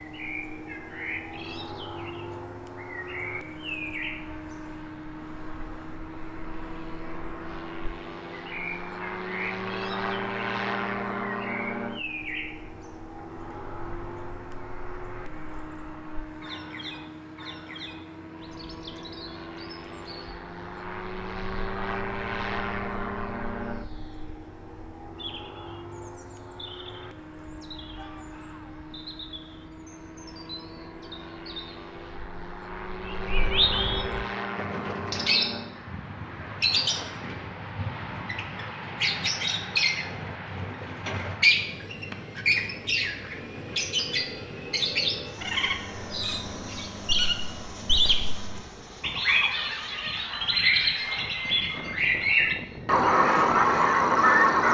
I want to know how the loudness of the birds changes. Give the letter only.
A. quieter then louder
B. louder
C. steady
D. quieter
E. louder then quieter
A.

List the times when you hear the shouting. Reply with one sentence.
The shouting can be heard from 27.9 to 28.9 s.